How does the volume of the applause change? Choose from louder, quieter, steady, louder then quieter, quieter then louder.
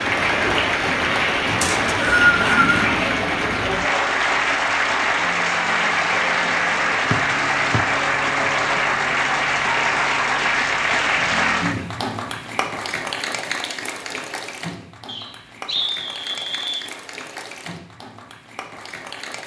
quieter.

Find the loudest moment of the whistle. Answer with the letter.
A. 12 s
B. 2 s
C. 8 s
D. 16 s
B.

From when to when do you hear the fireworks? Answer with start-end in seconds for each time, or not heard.
not heard.